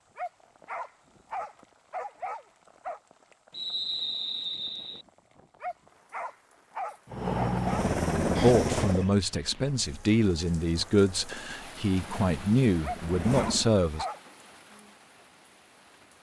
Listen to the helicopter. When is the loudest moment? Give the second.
8 s.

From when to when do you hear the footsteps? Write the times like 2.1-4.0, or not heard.
not heard.